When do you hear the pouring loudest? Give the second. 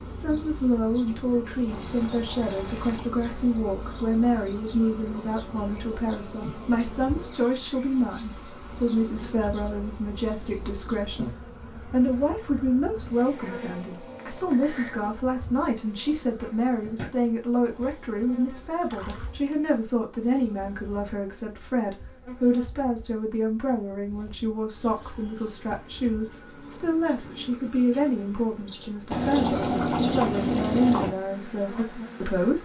30 s.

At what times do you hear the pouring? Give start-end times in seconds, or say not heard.
1.6-3.0, 18.6-19.3, 29.1-31.1.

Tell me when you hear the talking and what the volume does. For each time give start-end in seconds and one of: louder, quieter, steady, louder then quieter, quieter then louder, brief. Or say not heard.
0.1-32.6 steady.